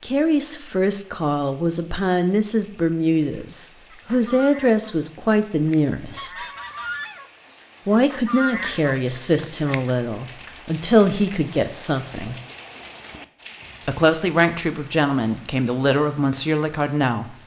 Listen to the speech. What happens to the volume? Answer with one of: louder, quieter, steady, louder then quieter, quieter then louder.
steady.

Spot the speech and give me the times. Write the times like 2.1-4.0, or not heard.
0.0-6.5, 7.8-12.4, 13.8-17.4.